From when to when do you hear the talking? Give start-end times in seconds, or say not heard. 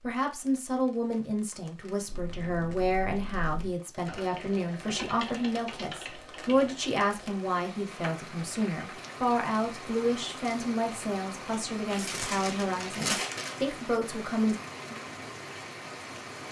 0.0-14.6.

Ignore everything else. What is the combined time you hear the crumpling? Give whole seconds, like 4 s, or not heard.
2 s.